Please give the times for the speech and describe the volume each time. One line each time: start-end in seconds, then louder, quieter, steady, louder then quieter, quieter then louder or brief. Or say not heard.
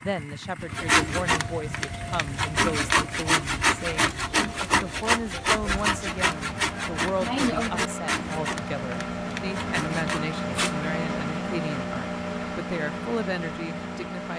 0.0-14.3 steady.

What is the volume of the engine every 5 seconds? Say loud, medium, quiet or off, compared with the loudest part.
medium, loud, loud.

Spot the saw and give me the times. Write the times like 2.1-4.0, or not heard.
0.6-10.3.